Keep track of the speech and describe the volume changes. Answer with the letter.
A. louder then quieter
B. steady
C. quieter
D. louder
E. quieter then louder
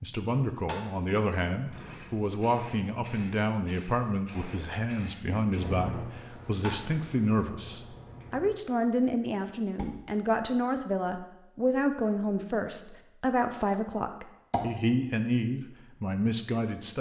B.